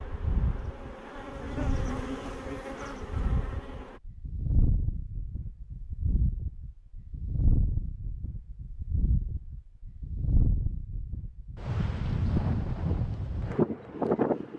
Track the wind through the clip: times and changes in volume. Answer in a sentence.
You can hear the wind from 0.0 to 14.5 s, getting louder.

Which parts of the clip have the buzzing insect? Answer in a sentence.
You can hear the buzzing insect from 0.0 to 4.0 s.